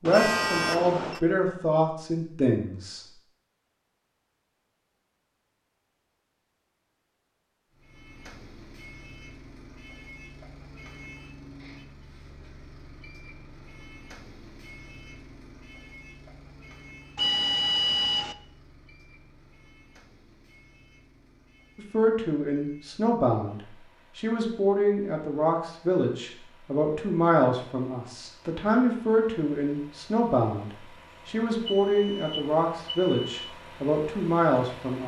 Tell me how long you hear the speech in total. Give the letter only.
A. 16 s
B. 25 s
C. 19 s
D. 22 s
A.